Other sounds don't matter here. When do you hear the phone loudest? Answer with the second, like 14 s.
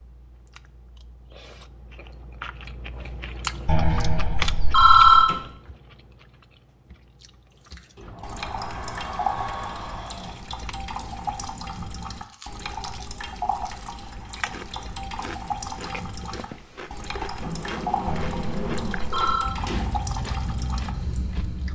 5 s.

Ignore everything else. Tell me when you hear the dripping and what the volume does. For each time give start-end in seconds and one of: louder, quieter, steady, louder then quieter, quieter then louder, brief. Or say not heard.
7.7-21.7 steady.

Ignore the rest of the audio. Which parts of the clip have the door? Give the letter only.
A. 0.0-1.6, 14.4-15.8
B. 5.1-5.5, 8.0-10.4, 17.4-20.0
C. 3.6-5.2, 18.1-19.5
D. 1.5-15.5
B.